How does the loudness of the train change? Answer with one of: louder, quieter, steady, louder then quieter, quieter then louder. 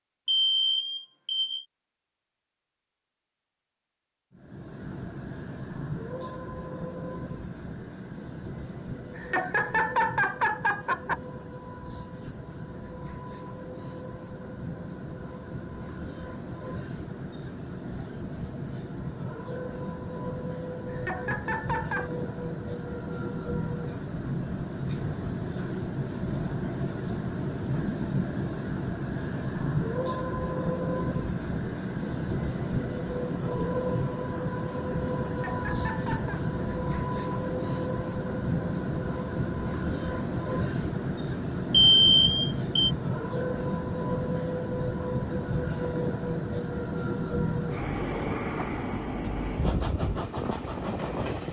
louder.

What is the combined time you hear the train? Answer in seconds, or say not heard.
47 s.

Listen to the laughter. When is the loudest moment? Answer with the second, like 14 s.
10 s.